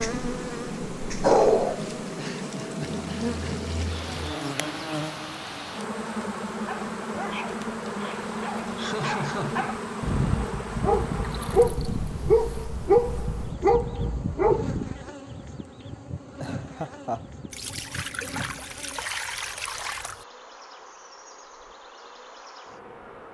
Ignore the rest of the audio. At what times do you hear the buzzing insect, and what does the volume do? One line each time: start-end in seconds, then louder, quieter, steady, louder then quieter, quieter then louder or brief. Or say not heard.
0.0-23.2 quieter.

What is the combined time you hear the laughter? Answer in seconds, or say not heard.
3 s.